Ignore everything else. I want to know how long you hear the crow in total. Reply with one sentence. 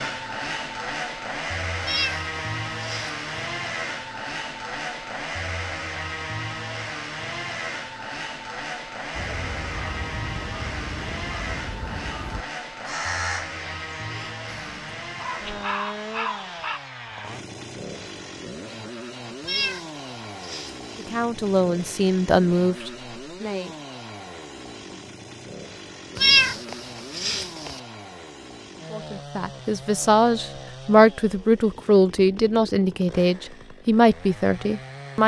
You can hear the crow for 8 seconds altogether.